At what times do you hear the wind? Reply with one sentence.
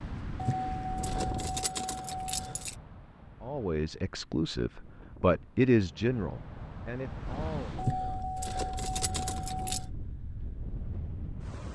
You can hear the wind from 0.0 to 11.6 s.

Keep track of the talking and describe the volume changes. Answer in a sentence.
The volume of the talking goes up, then down.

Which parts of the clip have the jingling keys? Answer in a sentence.
You can hear the jingling keys from 0.3 to 2.8 s and from 7.8 to 9.9 s.